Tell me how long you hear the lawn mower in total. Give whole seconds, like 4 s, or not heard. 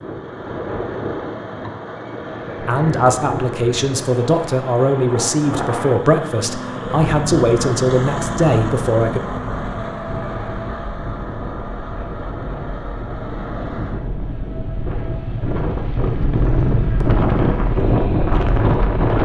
19 s.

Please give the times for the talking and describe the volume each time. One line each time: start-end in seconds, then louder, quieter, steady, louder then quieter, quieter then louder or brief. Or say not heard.
2.6-9.2 steady.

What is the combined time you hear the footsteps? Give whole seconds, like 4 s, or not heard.
not heard.